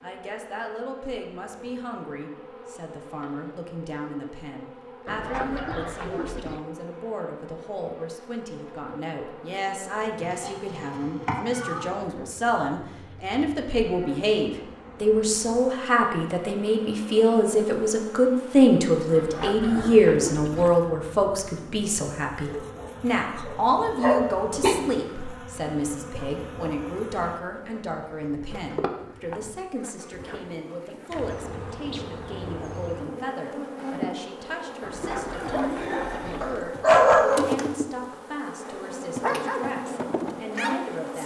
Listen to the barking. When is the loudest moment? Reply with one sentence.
The volume of the barking peaks at 37 seconds.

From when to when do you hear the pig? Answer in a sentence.
The pig can't be heard in this clip.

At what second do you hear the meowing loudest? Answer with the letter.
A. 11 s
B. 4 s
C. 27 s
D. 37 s
A.